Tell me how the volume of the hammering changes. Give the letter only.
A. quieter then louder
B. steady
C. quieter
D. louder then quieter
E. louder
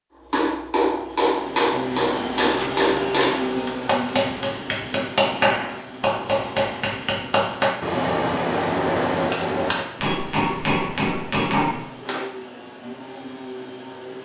B.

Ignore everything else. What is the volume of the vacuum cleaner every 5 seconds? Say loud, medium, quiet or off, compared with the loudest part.
loud, medium, medium.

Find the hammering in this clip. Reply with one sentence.
You can hear the hammering from 0.3 to 12.3 s.